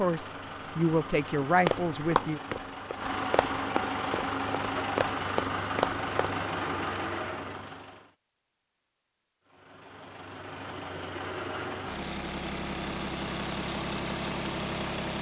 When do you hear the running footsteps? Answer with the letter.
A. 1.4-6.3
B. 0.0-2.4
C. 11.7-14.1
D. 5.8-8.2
A.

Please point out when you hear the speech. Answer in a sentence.
You can hear the speech from 0.0 to 2.4 s.